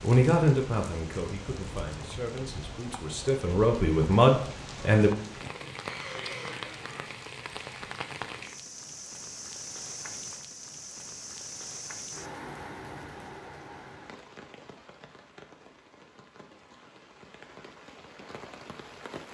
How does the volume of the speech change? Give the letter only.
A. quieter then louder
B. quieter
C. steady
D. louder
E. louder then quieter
A.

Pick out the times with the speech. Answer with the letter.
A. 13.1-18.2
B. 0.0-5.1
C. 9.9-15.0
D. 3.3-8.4
B.